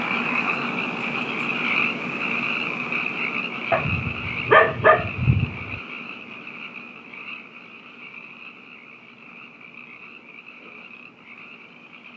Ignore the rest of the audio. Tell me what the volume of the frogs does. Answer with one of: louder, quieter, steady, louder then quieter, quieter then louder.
quieter.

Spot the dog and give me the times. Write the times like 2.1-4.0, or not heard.
3.7-5.8.